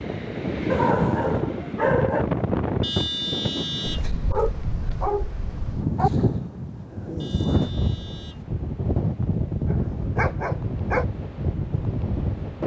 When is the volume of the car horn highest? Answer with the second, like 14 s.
3 s.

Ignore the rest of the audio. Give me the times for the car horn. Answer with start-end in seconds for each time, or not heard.
2.8-4.1, 7.2-8.4.